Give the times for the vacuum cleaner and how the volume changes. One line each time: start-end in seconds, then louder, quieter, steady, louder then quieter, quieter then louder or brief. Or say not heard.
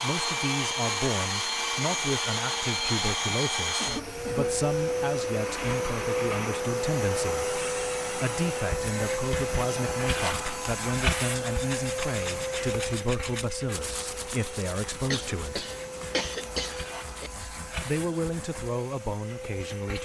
0.0-19.9 quieter.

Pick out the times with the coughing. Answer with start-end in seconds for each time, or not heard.
3.8-4.6, 15.1-17.3.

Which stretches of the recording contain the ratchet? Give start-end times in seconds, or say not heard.
not heard.